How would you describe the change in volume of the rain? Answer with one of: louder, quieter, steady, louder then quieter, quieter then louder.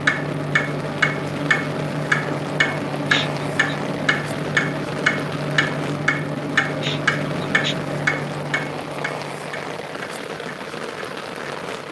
steady.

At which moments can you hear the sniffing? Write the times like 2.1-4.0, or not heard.
3.1-3.8, 6.8-7.8.